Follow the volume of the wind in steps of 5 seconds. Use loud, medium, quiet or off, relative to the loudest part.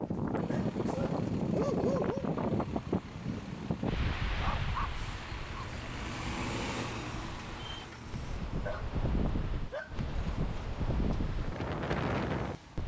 loud, medium, loud.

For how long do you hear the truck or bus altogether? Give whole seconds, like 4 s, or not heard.
13 s.